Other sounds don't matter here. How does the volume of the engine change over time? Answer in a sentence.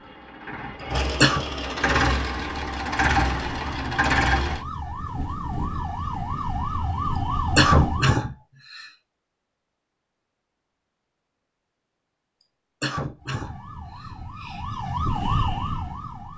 The volume of the engine goes up.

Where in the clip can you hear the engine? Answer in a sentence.
The engine can be heard from 0.0 to 4.7 s.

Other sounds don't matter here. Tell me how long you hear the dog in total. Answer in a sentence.
You can't hear the dog here.